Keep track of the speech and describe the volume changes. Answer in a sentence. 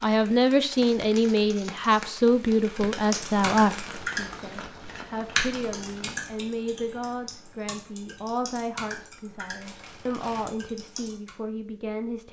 The loudness of the speech goes down.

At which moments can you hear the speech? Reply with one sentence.
The speech can be heard from 0.0 to 12.2 s.